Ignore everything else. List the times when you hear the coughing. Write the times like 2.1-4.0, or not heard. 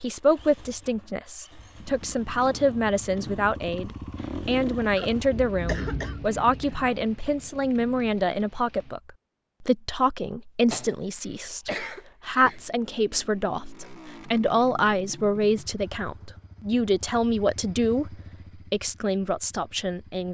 5.0-6.2, 10.7-12.7.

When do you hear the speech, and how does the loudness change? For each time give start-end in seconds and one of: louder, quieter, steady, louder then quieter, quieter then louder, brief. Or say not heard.
0.0-20.2 steady.